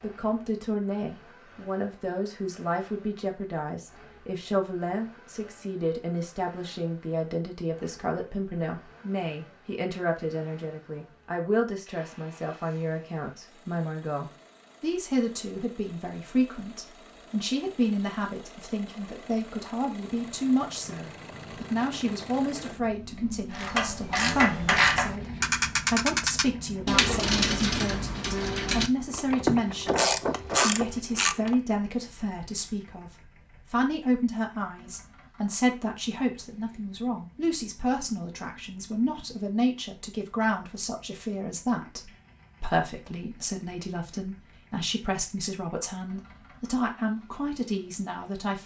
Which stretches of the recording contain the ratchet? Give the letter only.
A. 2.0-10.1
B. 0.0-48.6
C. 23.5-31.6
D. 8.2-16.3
C.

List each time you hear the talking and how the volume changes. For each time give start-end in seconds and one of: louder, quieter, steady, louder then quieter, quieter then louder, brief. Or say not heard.
0.0-48.6 steady.